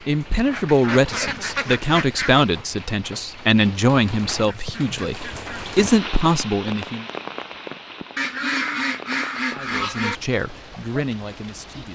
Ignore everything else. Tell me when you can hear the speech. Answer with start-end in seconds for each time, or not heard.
0.1-7.0, 9.5-11.9.